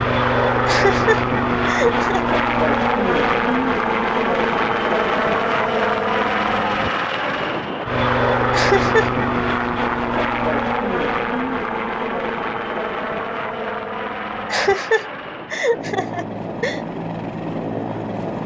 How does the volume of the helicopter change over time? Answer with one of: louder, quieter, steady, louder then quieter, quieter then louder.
quieter.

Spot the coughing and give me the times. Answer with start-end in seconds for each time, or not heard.
0.7-2.2, 8.5-9.1, 14.5-16.8.